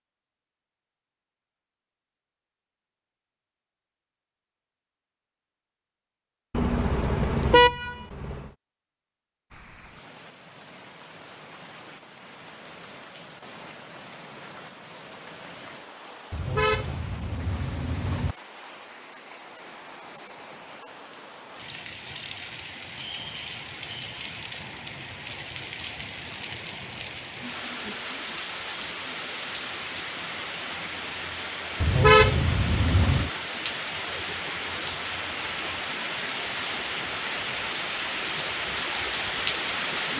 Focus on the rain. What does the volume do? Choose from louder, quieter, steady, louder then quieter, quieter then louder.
louder.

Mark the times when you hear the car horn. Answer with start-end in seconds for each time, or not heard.
6.5-8.4, 16.3-18.4, 31.8-33.3.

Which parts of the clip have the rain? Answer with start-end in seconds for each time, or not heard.
9.5-40.1.